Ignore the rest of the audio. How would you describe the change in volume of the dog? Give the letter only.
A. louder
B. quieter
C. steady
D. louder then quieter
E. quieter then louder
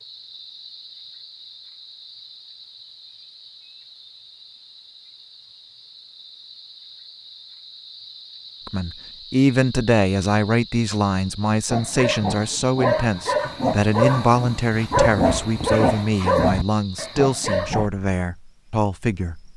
C.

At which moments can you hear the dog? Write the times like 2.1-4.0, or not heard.
11.7-17.9.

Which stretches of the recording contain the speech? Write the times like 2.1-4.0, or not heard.
8.7-19.4.